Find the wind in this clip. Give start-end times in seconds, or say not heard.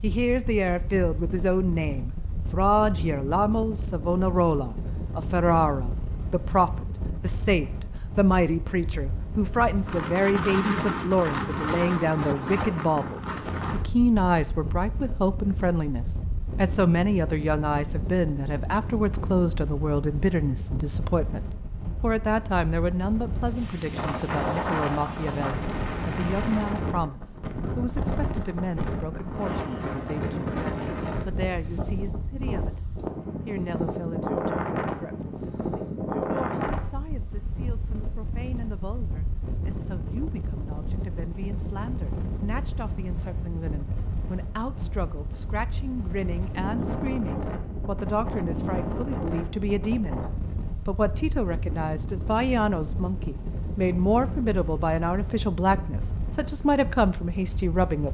0.0-58.1.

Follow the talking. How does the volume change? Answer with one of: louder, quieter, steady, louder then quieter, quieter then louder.
quieter then louder.